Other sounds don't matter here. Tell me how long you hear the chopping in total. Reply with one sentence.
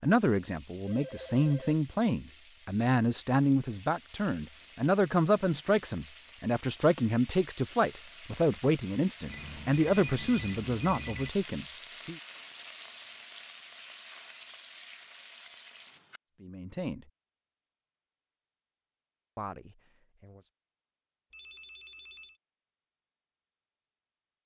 The chopping can't be heard in this clip.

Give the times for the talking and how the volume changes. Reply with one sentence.
The talking can be heard from 0.0 to 12.2 s, at a steady volume; briefly from 16.4 to 17.1 s; and briefly from 19.4 to 20.4 s.